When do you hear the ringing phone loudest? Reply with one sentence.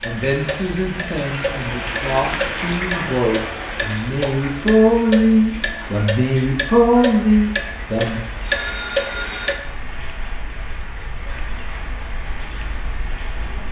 The loudest moment of the ringing phone is at 9 seconds.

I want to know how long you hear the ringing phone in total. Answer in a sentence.
You can hear the ringing phone for 2 seconds altogether.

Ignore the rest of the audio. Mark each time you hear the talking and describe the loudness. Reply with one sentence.
You can hear the talking from 0.0 to 8.2 s, getting louder.